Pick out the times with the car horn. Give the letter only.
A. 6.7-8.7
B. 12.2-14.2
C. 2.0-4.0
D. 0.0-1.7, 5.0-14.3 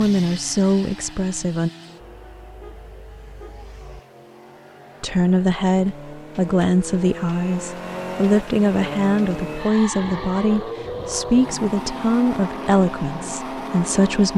C.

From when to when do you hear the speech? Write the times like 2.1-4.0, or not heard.
0.0-1.7, 5.0-14.3.